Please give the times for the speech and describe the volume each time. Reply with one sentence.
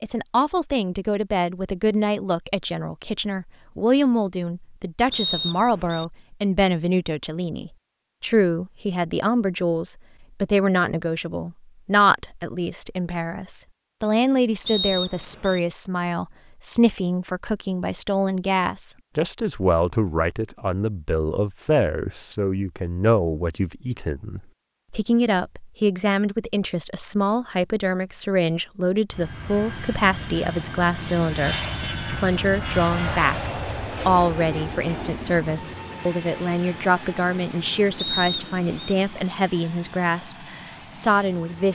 You can hear the speech from 0.0 to 41.6 s, at a steady volume.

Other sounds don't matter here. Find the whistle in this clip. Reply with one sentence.
You can hear the whistle from 5.1 to 6.0 s, from 14.7 to 15.6 s and from 38.0 to 39.0 s.